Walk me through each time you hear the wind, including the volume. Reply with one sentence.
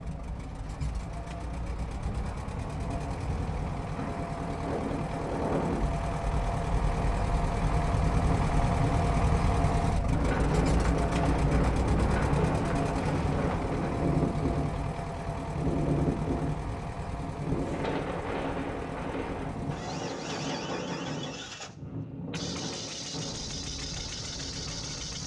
The wind can be heard from 0.0 to 25.2 s, getting louder then quieter.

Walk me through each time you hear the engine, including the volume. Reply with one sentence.
You can hear the engine from 0.0 to 25.2 s, getting louder then quieter.